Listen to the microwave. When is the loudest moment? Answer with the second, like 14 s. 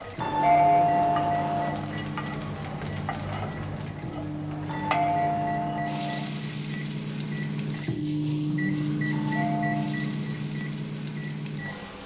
9 s.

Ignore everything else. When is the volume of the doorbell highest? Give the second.
1 s.